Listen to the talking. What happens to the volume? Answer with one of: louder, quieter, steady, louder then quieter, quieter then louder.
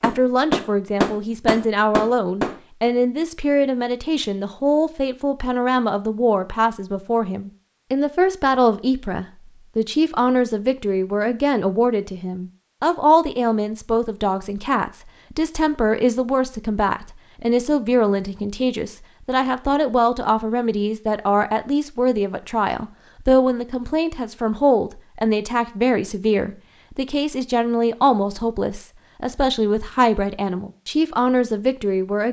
steady.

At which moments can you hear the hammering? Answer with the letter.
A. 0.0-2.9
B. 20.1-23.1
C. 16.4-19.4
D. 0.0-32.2
A.